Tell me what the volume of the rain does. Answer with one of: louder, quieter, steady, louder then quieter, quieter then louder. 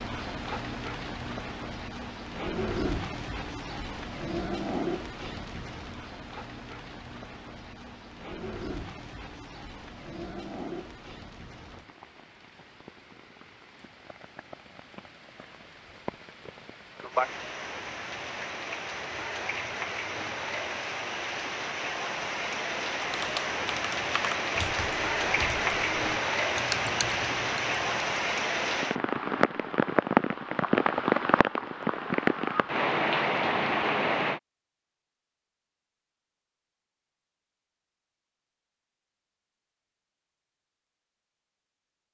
quieter then louder.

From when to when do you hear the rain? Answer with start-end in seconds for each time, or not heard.
0.0-34.4.